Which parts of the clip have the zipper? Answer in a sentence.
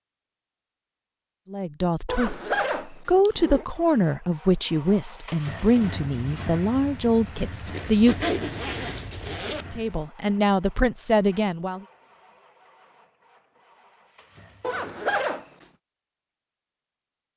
The zipper can be heard from 2.0 to 3.6 s, from 7.7 to 9.7 s and from 14.6 to 15.7 s.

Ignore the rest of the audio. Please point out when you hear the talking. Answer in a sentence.
You can hear the talking from 1.5 to 8.3 s and from 9.7 to 11.8 s.